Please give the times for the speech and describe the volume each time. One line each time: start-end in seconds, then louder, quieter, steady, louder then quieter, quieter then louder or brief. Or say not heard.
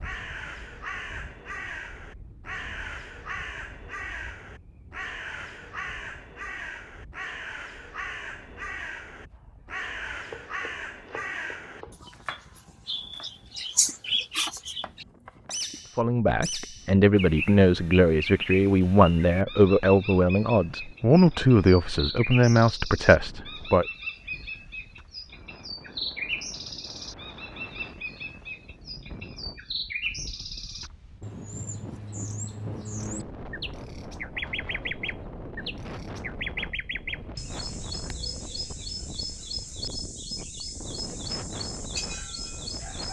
15.9-23.9 steady.